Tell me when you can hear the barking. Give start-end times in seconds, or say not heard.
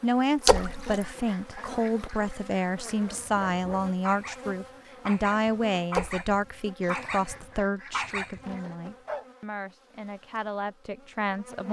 3.0-9.2.